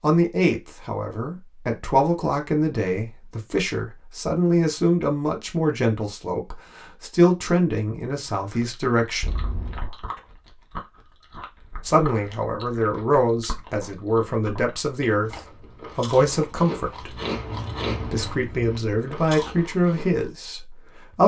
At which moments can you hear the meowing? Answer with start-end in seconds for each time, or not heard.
9.2-9.8.